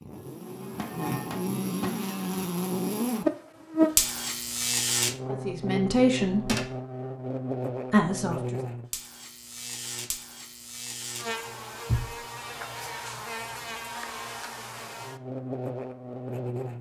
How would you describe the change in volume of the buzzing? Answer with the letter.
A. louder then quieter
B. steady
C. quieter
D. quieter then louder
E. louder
C.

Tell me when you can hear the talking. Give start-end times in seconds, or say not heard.
5.3-6.5, 7.9-8.6.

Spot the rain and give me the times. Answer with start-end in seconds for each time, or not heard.
not heard.